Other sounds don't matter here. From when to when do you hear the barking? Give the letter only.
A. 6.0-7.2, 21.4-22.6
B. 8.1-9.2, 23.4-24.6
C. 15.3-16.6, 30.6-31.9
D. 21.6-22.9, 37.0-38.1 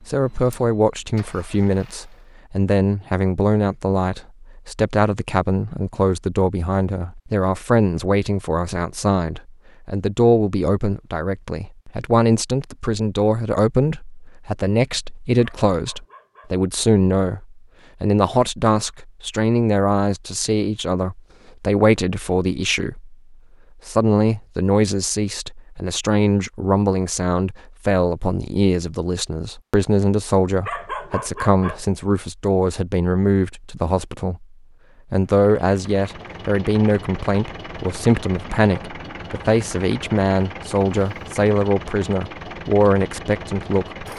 C.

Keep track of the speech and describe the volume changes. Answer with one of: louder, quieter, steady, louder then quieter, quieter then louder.
steady.